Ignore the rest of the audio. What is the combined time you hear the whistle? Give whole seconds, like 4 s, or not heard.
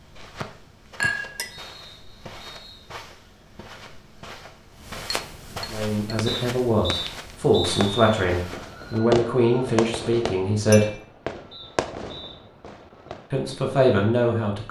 5 s.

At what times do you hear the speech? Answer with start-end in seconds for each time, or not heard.
5.7-11.0, 13.3-14.6.